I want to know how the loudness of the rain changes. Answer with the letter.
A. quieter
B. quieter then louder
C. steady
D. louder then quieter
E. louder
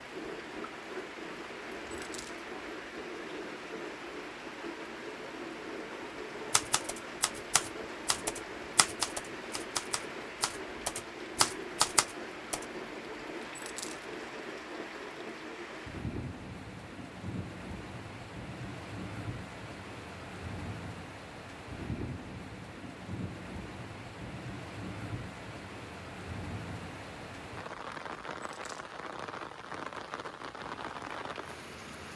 C.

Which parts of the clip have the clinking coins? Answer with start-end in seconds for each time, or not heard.
1.9-2.5, 13.6-14.1, 28.4-28.9.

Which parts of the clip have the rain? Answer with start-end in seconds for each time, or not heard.
0.0-32.1.